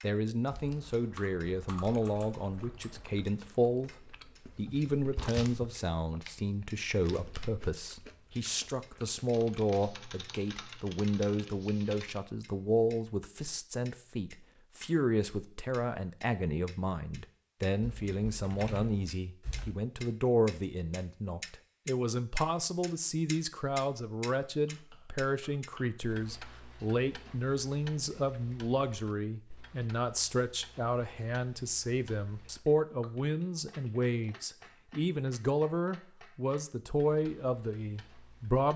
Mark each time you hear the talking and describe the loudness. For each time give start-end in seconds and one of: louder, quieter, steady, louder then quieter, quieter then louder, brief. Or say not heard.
0.0-38.7 steady.